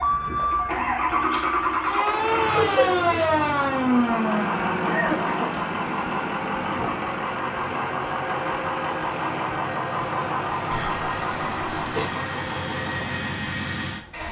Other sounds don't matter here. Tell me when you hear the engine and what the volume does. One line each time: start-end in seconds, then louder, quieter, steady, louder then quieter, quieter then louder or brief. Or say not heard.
0.0-14.2 steady.